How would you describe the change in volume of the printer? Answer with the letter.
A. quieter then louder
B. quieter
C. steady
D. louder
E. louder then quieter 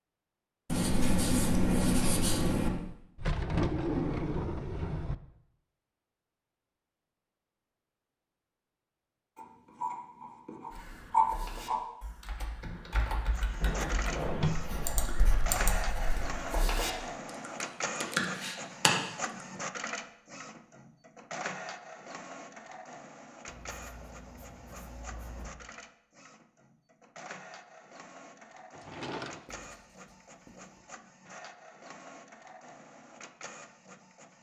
B.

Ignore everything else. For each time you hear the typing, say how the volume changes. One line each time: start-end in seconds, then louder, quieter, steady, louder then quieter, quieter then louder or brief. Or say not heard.
10.7-19.4 louder.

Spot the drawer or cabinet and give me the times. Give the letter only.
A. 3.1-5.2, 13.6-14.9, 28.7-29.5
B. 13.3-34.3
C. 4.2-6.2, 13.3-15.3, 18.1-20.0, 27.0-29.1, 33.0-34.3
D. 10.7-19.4
A.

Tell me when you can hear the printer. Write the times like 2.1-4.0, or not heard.
13.3-34.3.